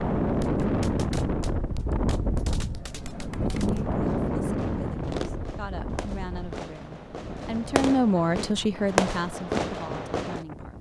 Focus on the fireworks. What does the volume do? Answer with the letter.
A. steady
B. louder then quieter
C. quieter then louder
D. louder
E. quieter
D.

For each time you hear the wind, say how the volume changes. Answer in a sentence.
The wind can be heard from 0.0 to 10.7 s, getting quieter.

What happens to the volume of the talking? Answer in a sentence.
The volume of the talking goes up, then down.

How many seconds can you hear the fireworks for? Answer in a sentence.
The fireworks can be heard for 10 seconds in total.